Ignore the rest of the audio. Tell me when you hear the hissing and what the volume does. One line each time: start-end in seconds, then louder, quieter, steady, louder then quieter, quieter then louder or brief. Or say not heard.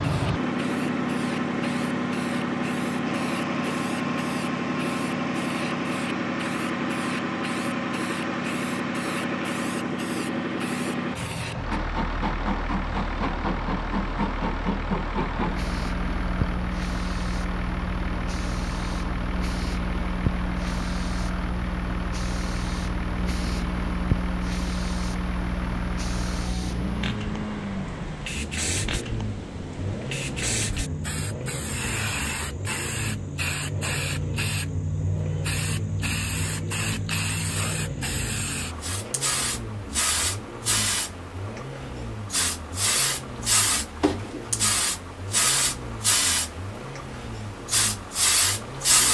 0.0-49.1 louder.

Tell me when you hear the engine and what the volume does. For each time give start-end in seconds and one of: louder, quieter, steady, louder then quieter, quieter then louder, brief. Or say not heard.
0.0-49.1 quieter.